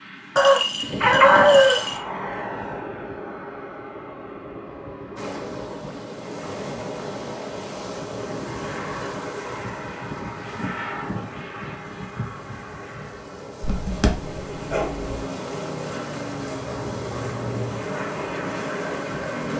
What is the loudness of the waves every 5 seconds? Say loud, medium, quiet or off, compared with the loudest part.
off, loud, medium, loud.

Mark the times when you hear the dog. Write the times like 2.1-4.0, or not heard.
0.3-2.0, 13.6-15.1.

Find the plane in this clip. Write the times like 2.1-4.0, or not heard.
0.0-5.7, 8.2-19.5.